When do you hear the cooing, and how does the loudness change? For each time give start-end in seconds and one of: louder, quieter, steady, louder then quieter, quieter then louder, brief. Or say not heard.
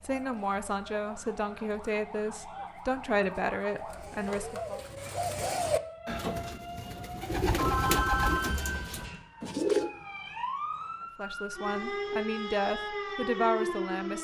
0.1-9.9 louder.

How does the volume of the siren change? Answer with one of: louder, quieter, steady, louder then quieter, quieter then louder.
louder.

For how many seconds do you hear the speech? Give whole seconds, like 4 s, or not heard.
8 s.